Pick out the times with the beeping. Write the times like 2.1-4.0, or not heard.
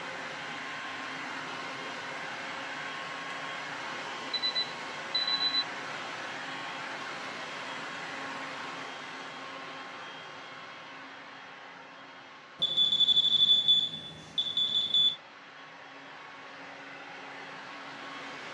4.3-5.7, 12.6-15.2.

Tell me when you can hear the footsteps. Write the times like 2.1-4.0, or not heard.
not heard.